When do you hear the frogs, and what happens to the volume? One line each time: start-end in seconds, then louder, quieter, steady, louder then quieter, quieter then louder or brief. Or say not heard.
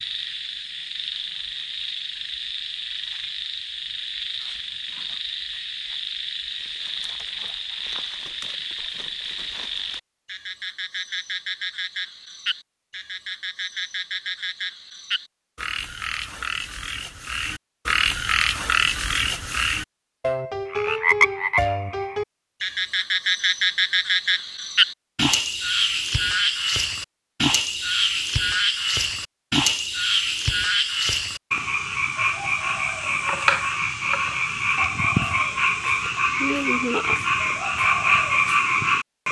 0.0-39.2 louder.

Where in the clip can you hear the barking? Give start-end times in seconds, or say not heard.
not heard.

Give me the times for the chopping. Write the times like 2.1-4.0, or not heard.
33.1-34.5.